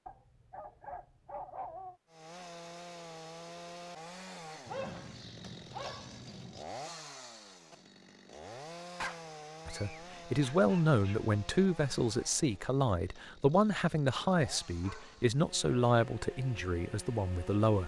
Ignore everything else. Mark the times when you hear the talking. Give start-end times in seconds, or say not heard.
9.7-17.8.